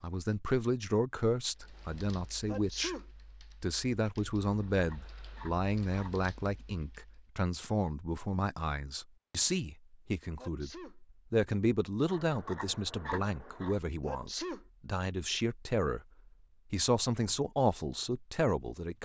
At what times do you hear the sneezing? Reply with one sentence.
You can hear the sneezing from 2.5 to 3.0 s, from 10.3 to 10.9 s and from 14.1 to 14.7 s.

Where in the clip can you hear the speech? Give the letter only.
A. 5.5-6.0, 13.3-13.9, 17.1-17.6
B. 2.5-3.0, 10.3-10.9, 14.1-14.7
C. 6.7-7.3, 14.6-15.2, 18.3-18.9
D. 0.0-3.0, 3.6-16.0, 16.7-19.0
D.